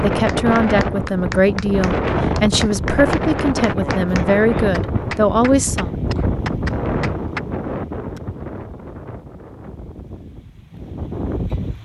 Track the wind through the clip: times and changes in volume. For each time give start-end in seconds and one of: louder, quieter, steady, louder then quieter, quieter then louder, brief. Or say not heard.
0.0-11.8 quieter.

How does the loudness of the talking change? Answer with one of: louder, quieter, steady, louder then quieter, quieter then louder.
steady.